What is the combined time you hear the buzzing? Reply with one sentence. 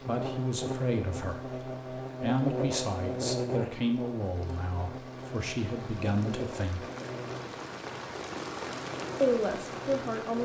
The buzzing can be heard for 10 seconds in total.